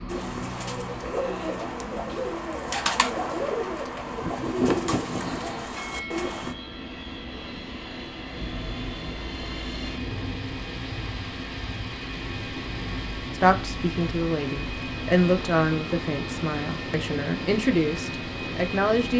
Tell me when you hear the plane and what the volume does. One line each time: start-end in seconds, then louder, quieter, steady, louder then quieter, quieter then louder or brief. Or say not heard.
0.0-19.1 louder.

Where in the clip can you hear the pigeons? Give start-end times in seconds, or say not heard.
0.1-6.5.